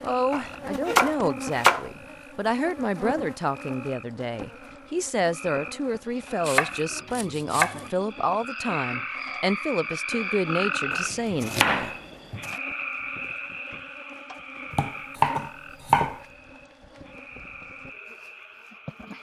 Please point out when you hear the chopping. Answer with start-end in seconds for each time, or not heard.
0.3-1.9, 6.5-7.9, 10.9-12.6, 14.7-16.2.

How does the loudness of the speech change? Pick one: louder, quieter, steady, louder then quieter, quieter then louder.
steady.